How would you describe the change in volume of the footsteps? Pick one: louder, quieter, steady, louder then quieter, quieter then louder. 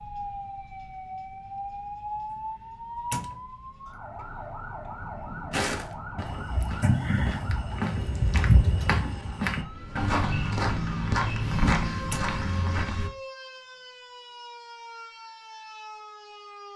louder.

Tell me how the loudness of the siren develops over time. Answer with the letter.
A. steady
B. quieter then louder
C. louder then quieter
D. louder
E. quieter
E.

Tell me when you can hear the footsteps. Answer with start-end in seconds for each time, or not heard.
5.5-13.1.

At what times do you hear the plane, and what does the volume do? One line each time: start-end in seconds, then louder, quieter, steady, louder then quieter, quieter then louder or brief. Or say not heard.
not heard.